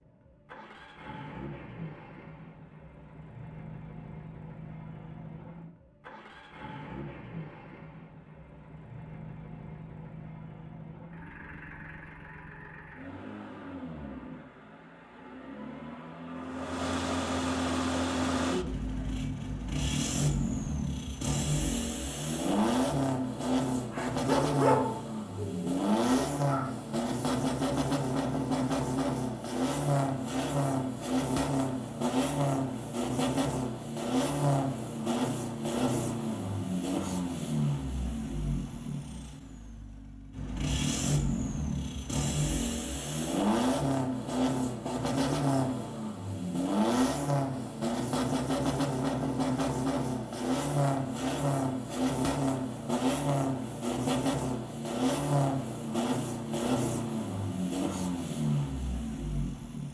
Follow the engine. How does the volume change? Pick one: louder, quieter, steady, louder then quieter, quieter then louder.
louder.